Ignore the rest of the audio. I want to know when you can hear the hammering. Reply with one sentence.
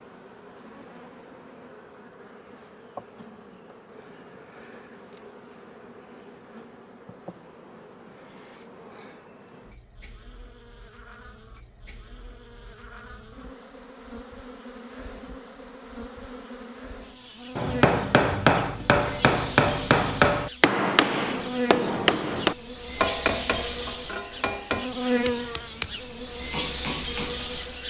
The hammering can be heard from 17.6 to 27.6 s.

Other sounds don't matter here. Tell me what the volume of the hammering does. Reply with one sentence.
The volume of the hammering goes down.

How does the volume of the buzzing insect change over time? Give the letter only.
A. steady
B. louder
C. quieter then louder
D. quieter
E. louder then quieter
B.